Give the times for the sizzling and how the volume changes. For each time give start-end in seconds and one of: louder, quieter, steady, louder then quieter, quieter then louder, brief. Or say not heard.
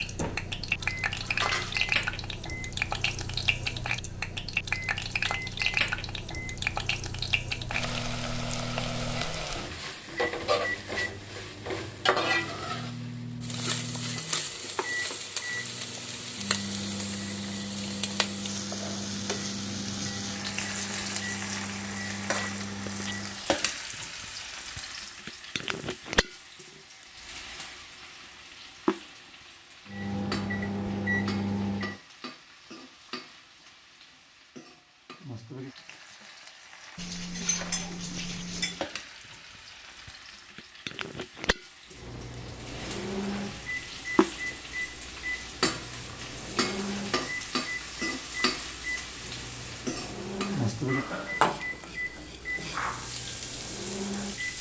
0.0-54.5 quieter then louder.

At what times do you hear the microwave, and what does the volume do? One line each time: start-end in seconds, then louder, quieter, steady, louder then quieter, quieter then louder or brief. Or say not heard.
0.0-23.4 steady
29.9-31.9 brief
41.9-54.5 steady.